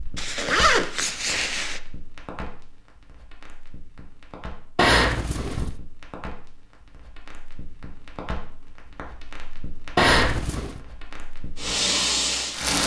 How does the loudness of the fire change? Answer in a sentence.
The volume of the fire goes down, then up.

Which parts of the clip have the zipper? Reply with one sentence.
The zipper can be heard from 0.1 to 1.8 s, from 4.8 to 5.7 s and from 9.9 to 10.8 s.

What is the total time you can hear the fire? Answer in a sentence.
The fire can be heard for 13 seconds in total.